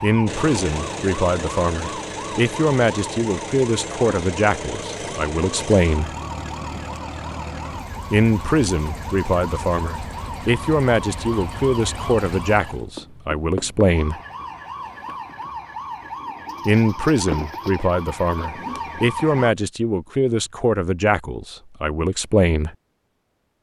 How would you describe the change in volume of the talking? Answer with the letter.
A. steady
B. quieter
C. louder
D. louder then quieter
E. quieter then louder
A.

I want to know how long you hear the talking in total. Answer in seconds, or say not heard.
18 s.